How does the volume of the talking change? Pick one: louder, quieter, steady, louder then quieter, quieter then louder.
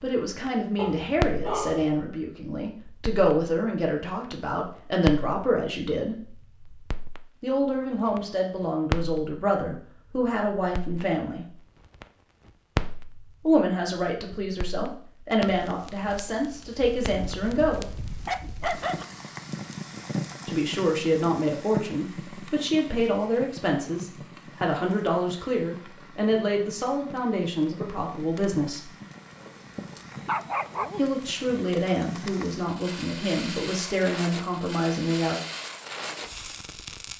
steady.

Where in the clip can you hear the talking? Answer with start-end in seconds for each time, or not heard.
0.0-6.2, 7.4-11.5, 13.4-17.9, 20.4-28.9, 30.9-35.4.